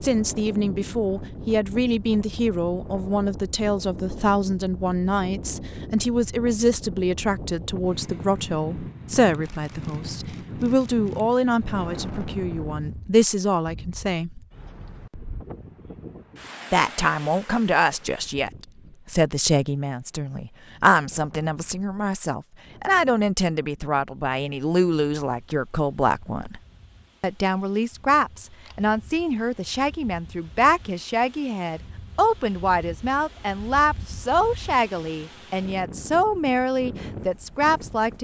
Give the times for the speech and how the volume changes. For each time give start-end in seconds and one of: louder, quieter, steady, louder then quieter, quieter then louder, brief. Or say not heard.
0.0-14.4 steady
16.7-26.6 steady
27.2-38.1 steady.